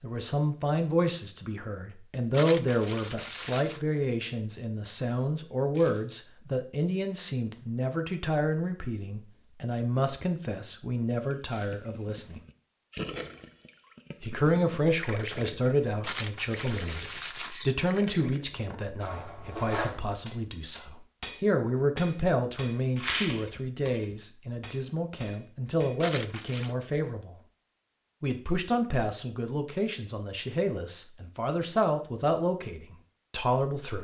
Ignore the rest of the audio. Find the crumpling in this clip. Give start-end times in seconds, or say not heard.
2.3-3.8, 16.0-17.6, 26.0-26.8.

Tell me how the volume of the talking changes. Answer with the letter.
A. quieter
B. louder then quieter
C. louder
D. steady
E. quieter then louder
D.